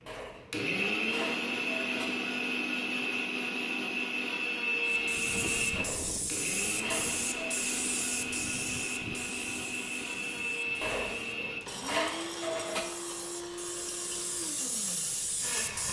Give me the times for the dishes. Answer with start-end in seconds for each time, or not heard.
0.1-2.0, 5.8-7.5, 10.8-12.8.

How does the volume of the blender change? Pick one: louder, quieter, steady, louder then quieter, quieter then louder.
quieter.